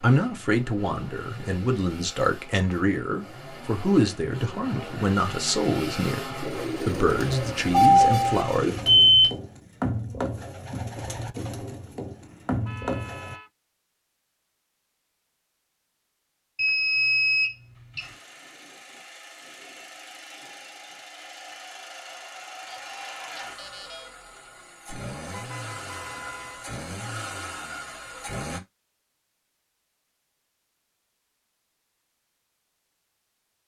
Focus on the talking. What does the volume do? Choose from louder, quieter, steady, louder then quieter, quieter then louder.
steady.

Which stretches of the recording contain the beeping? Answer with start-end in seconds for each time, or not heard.
7.7-9.3, 16.6-18.1, 22.7-24.1.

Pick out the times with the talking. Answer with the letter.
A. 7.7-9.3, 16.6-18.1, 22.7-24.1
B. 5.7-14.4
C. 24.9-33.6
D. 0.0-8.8
D.